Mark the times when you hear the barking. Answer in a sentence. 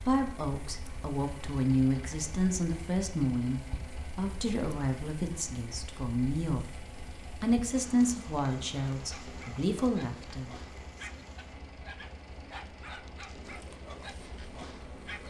The barking can be heard from 8.9 to 15.2 s.